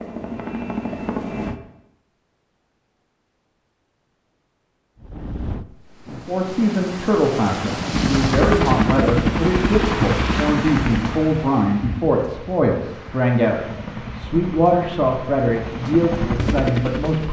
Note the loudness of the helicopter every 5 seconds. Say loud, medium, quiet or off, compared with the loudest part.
medium, loud, medium, medium.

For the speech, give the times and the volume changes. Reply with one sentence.
The speech can be heard from 6.2 to 17.2 s, at a steady volume.